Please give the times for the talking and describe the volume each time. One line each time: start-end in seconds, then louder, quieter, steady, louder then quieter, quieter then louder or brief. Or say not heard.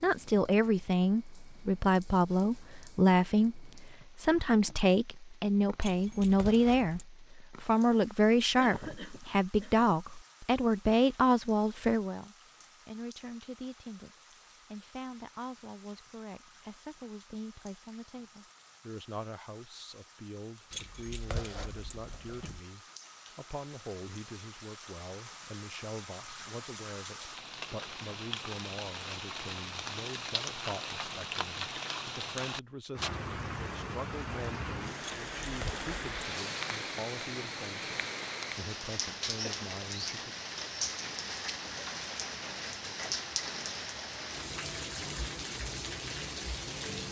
0.0-40.4 quieter.